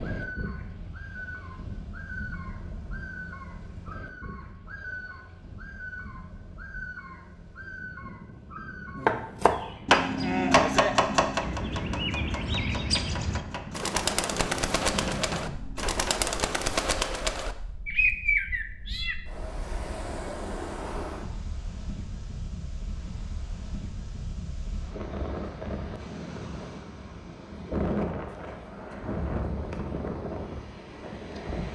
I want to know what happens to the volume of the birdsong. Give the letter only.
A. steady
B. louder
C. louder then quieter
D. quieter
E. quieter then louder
B.